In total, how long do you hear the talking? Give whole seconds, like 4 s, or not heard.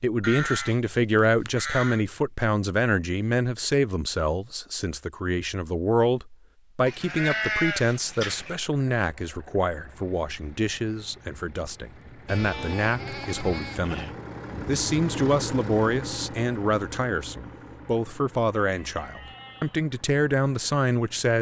21 s.